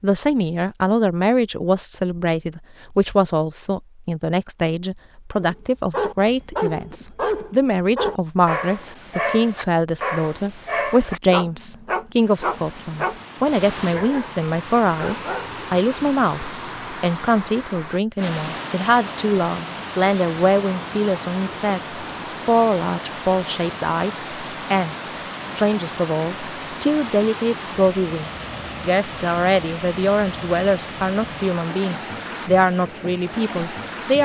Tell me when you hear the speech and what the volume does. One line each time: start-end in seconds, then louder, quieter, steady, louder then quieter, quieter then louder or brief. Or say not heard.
0.0-34.2 steady.